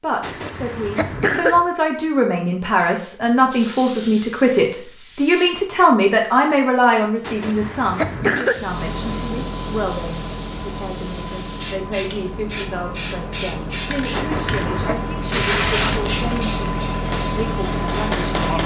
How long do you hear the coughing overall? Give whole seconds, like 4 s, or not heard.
4 s.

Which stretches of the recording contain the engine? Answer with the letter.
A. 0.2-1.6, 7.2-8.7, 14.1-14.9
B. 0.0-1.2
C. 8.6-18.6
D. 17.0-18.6
C.